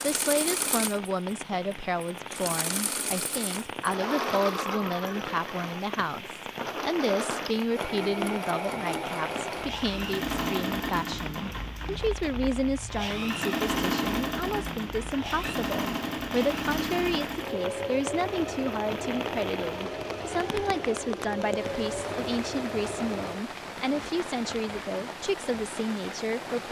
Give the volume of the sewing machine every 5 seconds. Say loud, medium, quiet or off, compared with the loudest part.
loud, loud, loud, loud, loud, off.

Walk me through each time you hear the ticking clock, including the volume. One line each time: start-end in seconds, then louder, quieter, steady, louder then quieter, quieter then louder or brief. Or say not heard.
not heard.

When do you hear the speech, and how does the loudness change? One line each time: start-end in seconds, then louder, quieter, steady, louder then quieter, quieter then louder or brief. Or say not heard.
0.0-26.6 steady.